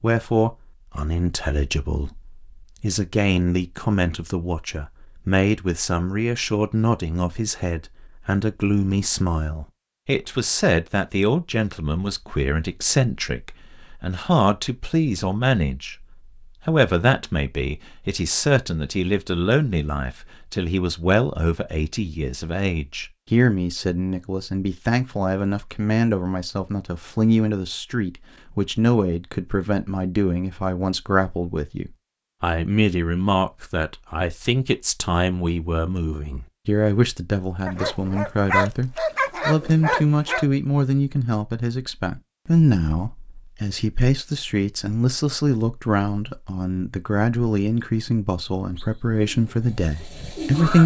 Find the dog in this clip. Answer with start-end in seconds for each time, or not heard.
37.6-40.5.